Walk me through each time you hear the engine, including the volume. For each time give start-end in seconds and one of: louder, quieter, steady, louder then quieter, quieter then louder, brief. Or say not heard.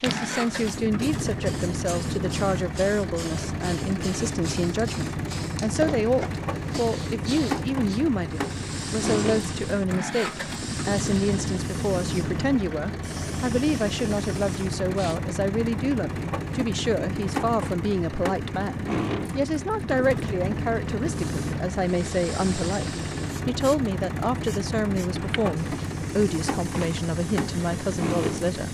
0.0-28.6 steady.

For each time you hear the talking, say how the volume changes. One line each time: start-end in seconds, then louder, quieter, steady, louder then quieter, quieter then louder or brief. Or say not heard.
0.0-28.6 steady.